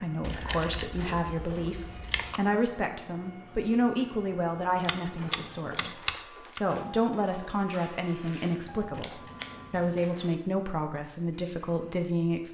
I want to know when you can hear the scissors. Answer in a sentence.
The scissors can be heard from 0.2 to 2.4 s, from 4.8 to 6.6 s and from 8.8 to 10.0 s.